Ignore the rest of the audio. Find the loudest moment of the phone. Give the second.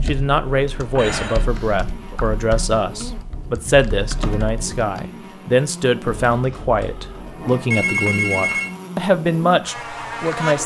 8 s.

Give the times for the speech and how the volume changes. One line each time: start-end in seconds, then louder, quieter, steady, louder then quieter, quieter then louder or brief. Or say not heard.
0.1-10.6 steady.